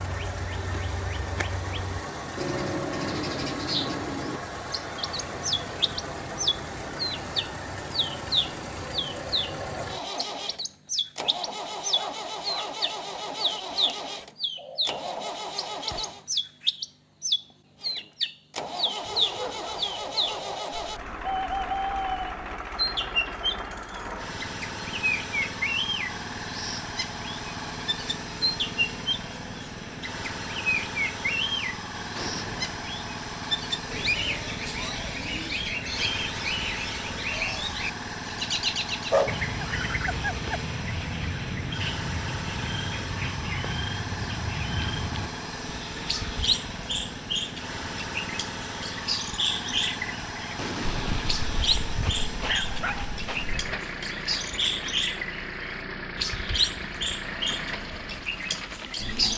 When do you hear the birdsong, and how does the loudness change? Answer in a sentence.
The birdsong can be heard from 0.0 to 59.3 s, at a steady volume.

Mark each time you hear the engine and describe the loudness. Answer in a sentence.
You can hear the engine from 0.0 to 16.2 s, at a steady volume; and from 17.8 to 59.3 s, at a steady volume.